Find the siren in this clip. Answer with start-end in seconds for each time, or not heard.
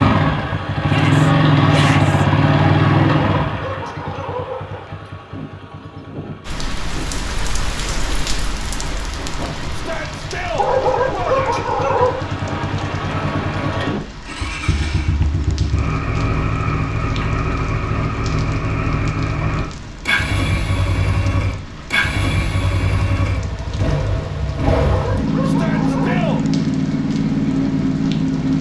not heard.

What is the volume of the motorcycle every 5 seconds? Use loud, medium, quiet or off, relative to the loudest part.
loud, quiet, medium, medium, medium, loud.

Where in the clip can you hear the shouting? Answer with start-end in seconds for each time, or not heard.
0.8-2.2, 9.7-11.6, 25.4-26.4.